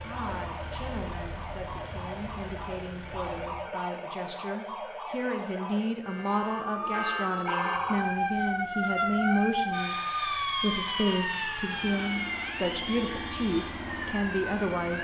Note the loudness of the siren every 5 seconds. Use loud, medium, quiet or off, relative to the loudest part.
medium, loud, loud.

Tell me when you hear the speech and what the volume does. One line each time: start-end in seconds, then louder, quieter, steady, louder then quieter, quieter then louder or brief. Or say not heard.
0.0-14.9 louder.